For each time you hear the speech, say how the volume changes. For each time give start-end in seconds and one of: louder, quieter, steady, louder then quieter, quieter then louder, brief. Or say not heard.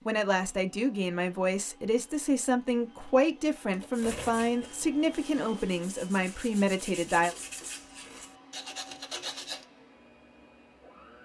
0.1-7.3 steady.